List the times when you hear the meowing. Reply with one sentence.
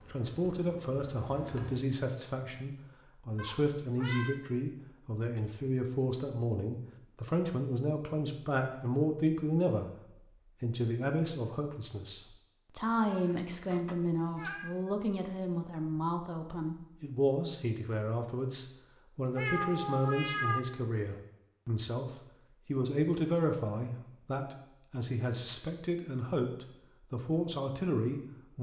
You can hear the meowing from 3.4 to 4.3 s, from 13.1 to 14.7 s and from 19.4 to 20.6 s.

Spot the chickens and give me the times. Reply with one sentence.
The chickens can't be heard in this clip.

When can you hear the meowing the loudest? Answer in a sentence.
The volume of the meowing peaks at 20 seconds.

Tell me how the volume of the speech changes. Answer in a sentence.
The volume of the speech stays about the same.